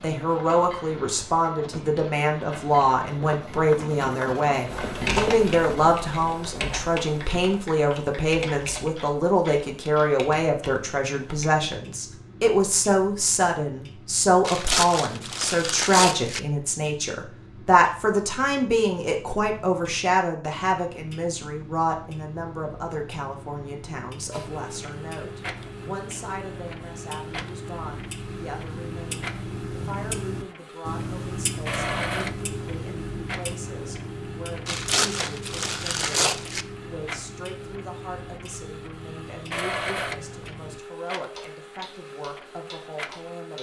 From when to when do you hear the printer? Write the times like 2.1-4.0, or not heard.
0.0-6.0, 24.3-43.5.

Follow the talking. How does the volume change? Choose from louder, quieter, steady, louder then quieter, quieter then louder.
quieter.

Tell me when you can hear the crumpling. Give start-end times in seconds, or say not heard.
14.4-16.4, 34.6-36.6.